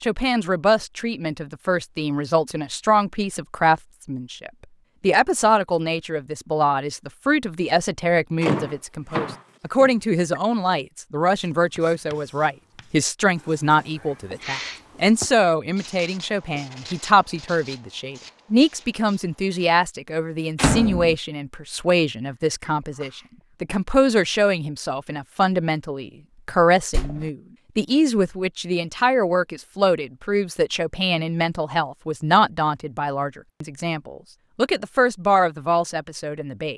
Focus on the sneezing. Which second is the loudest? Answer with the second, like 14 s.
15 s.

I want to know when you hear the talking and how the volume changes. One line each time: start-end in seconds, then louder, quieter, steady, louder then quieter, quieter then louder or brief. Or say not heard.
0.0-36.7 steady.